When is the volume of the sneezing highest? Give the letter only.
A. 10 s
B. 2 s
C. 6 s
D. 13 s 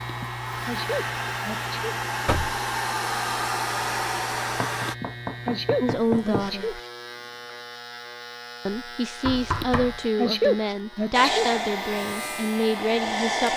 A.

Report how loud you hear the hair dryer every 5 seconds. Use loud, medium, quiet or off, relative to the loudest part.
loud, off, loud.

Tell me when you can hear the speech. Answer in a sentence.
The speech can be heard from 5.8 to 6.8 s and from 8.7 to 13.5 s.